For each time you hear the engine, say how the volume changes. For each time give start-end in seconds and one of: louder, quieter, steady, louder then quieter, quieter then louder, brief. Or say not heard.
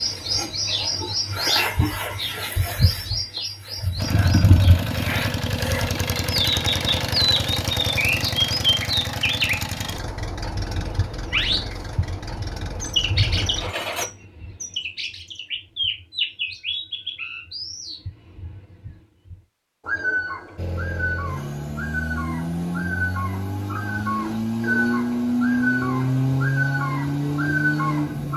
4.0-14.1 quieter
20.6-28.3 louder.